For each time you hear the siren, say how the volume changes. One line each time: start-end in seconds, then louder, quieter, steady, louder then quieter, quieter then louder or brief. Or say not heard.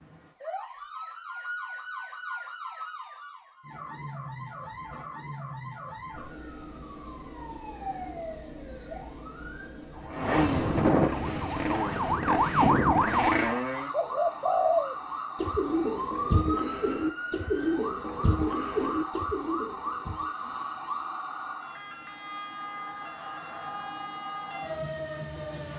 0.0-25.7 louder then quieter.